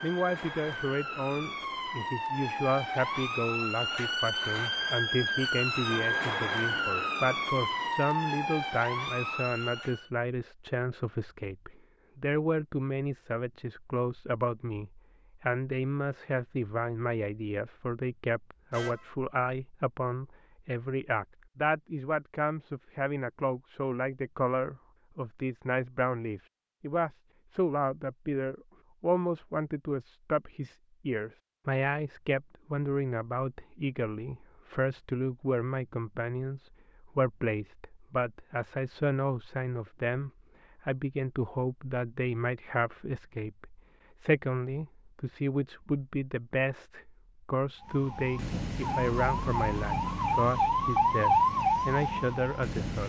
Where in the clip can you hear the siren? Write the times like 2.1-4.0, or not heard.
0.0-10.1, 47.8-53.0.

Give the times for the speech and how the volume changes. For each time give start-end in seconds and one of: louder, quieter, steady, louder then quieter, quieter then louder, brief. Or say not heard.
0.0-53.0 steady.